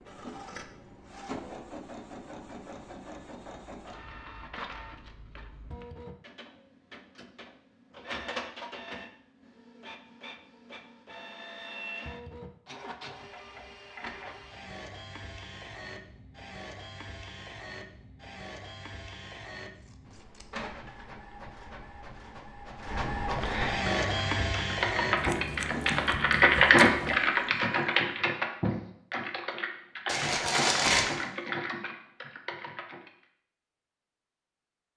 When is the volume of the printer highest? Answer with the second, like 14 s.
24 s.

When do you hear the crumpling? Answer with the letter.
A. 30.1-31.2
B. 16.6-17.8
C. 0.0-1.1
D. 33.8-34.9
A.